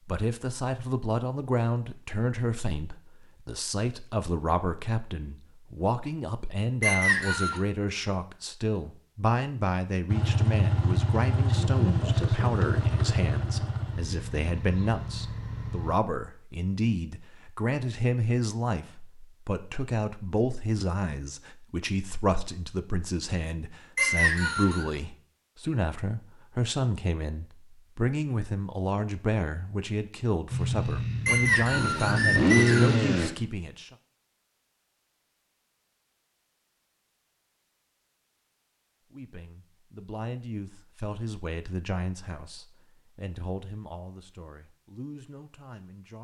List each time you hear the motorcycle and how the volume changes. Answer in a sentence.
You can hear the motorcycle from 10.1 to 15.9 s, getting quieter; and briefly from 30.5 to 33.3 s.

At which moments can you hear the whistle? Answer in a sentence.
The whistle can be heard from 6.8 to 7.6 s, from 23.9 to 24.9 s and from 31.2 to 33.0 s.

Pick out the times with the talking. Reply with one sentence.
The talking can be heard from 0.1 to 34.0 s and from 39.1 to 46.2 s.